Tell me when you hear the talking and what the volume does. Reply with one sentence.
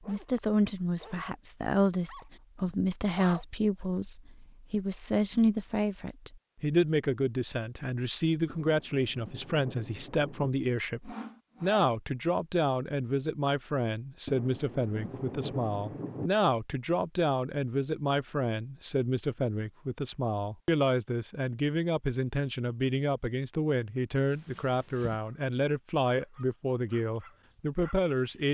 You can hear the talking from 0.1 to 28.4 s, at a steady volume.